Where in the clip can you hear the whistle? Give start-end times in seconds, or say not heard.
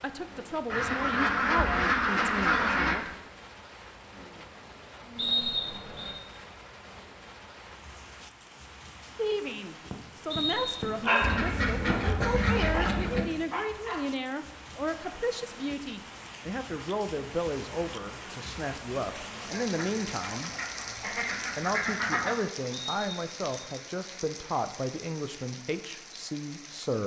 5.2-6.2, 10.3-11.2, 22.7-23.4.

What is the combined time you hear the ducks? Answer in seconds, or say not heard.
7 s.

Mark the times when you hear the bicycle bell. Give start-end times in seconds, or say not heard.
not heard.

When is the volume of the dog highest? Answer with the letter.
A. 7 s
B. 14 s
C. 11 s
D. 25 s
C.